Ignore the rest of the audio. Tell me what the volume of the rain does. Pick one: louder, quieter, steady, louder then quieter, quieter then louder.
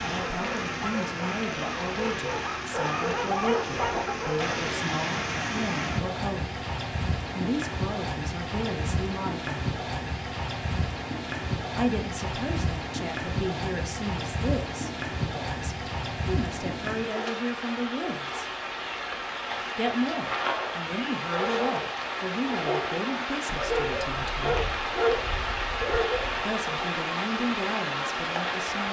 steady.